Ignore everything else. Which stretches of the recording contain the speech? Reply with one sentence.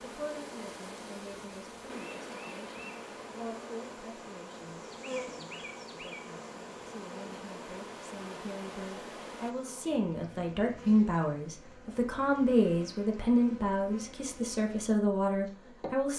The speech can be heard from 0.0 to 16.1 s.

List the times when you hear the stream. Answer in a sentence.
The stream can be heard from 0.0 to 9.6 s.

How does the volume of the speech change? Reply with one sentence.
The volume of the speech goes up.